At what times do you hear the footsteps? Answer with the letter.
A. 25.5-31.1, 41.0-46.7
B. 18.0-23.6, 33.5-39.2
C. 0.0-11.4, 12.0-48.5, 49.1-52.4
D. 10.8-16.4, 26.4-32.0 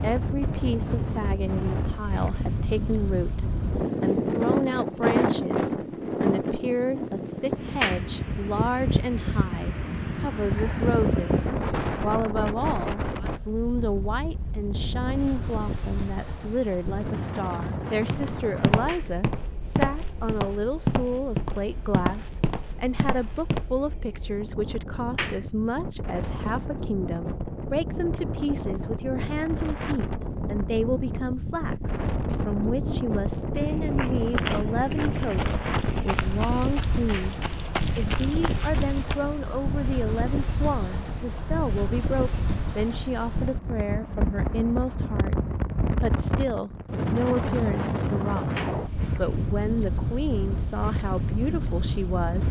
B.